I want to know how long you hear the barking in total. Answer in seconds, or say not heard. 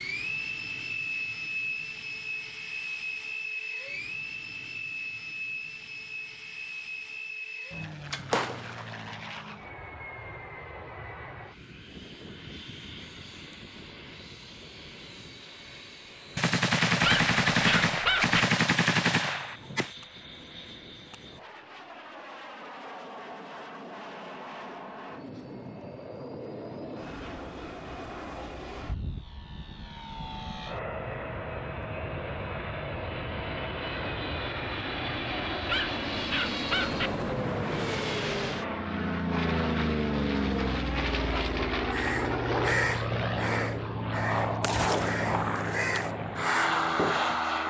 3 s.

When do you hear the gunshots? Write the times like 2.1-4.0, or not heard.
8.1-8.9, 16.4-19.9, 44.6-46.1.